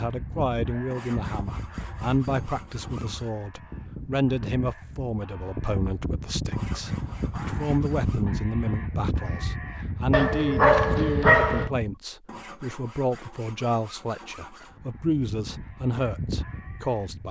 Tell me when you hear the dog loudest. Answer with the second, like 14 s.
11 s.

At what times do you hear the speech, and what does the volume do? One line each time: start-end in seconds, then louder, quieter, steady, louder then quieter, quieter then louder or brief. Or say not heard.
0.0-17.2 steady.